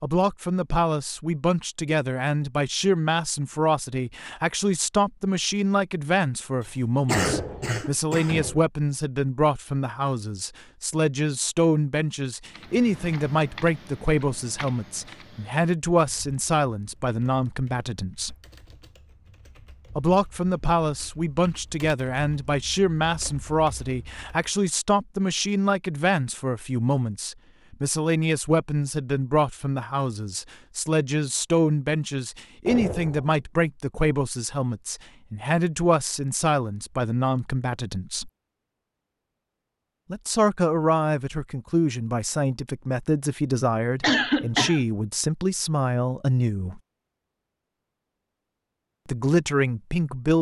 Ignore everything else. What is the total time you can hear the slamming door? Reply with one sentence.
You can hear the slamming door for 2 seconds altogether.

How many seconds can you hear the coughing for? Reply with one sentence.
You can hear the coughing for 2 seconds altogether.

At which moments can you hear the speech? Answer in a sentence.
You can hear the speech from 0.0 to 18.4 s, from 19.9 to 38.3 s, from 40.1 to 46.8 s and from 49.0 to 50.3 s.